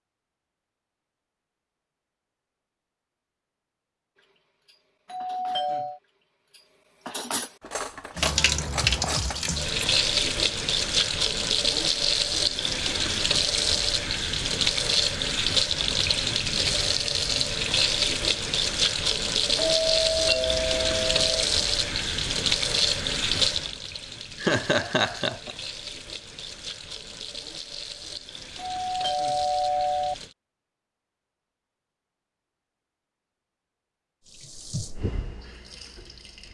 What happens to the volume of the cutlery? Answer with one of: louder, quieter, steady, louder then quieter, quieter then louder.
quieter then louder.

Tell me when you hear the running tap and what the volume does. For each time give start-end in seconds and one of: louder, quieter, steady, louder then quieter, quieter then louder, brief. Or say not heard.
8.2-30.4 quieter
34.2-36.4 brief.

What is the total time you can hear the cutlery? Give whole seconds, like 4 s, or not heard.
6 s.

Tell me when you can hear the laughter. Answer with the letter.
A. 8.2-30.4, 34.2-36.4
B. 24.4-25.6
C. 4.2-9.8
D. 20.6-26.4
B.